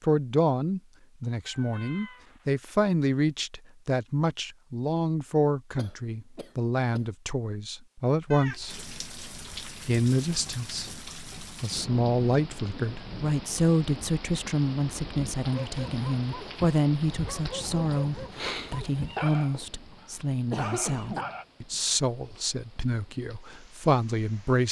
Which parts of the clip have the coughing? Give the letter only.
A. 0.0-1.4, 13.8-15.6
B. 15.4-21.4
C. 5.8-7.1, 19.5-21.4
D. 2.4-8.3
C.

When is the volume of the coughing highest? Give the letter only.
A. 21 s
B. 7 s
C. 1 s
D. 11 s
A.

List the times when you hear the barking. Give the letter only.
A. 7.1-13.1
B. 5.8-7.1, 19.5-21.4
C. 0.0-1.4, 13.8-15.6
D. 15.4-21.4
D.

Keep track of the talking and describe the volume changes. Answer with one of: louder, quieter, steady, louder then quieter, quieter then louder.
steady.